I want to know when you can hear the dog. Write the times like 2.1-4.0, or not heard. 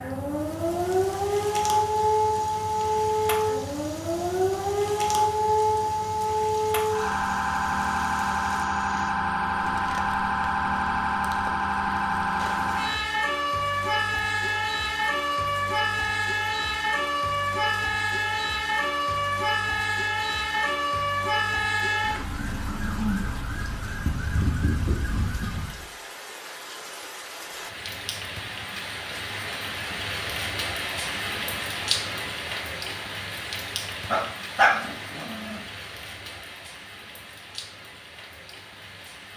34.1-35.6.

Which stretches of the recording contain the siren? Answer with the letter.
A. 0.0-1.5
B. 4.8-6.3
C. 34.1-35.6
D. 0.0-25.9
D.